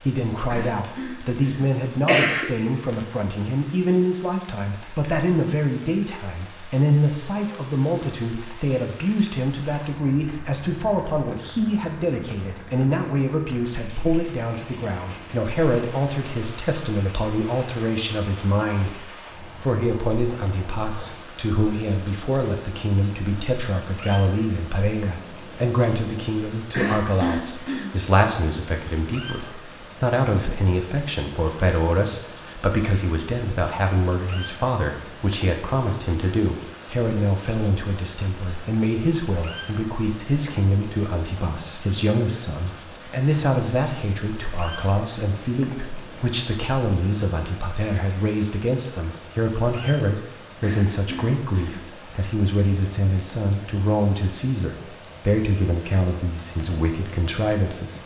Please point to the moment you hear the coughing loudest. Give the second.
2 s.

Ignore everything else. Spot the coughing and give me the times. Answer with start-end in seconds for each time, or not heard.
0.5-2.5, 26.7-27.9, 50.6-51.9.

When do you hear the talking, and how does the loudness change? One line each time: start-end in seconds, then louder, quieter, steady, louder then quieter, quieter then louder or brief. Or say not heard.
0.0-58.0 steady.